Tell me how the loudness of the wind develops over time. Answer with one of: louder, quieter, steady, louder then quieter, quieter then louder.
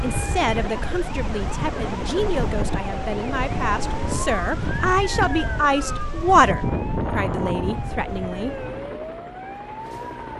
louder.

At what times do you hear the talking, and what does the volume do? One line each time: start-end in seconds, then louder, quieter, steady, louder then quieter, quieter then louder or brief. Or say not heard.
0.0-8.5 louder then quieter.